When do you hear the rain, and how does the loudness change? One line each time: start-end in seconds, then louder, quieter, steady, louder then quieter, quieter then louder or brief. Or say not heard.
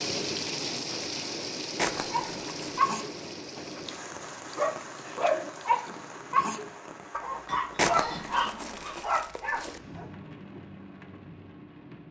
0.0-12.0 quieter.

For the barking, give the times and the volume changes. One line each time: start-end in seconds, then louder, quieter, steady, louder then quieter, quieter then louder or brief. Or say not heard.
2.1-10.1 steady.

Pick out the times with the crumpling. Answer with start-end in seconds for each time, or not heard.
1.8-2.9, 7.8-9.8.